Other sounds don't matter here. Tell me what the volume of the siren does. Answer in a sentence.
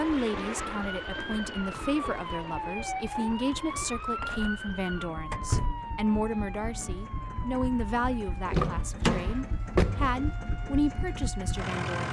The volume of the siren goes down.